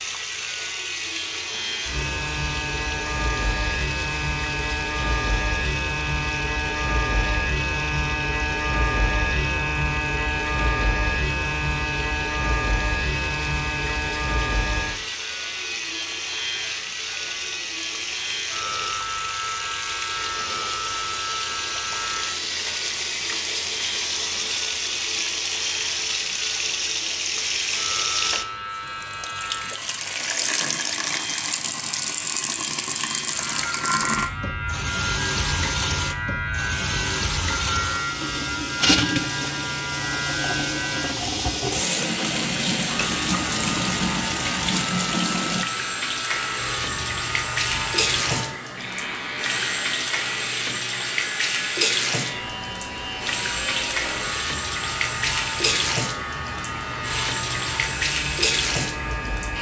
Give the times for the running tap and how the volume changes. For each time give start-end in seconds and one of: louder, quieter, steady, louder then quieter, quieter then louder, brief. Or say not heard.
0.0-59.5 louder.